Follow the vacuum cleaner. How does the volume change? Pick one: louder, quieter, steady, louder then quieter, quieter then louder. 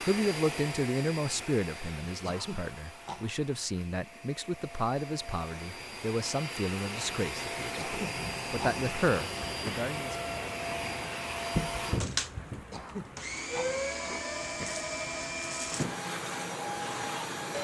louder.